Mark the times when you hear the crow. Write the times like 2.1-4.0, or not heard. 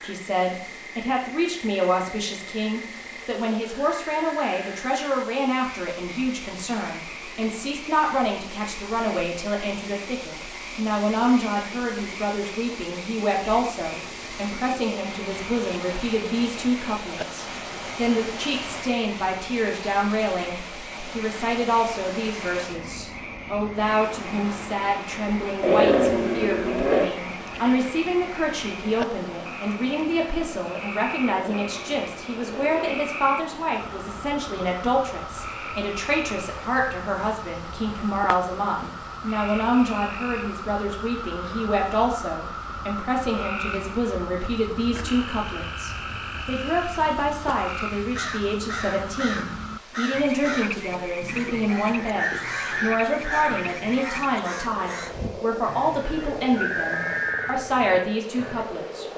48.0-58.6.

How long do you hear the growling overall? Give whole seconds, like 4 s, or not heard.
3 s.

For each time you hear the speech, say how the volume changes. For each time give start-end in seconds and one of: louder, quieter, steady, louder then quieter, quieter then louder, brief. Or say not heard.
0.0-59.0 steady.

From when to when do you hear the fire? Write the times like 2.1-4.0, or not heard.
not heard.